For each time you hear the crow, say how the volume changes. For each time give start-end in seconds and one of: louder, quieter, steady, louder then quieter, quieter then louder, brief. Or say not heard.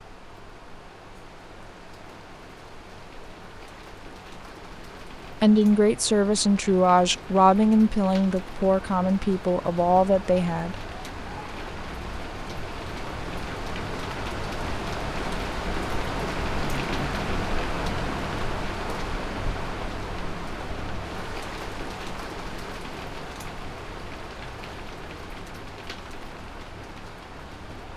not heard.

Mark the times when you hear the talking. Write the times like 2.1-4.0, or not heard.
5.4-10.8.